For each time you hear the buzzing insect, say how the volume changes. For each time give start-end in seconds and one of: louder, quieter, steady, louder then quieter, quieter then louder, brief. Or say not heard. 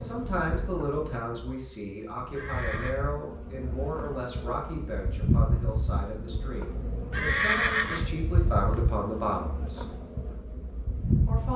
0.0-11.5 louder then quieter.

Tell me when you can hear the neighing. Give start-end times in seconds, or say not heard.
2.4-3.0, 7.1-8.1.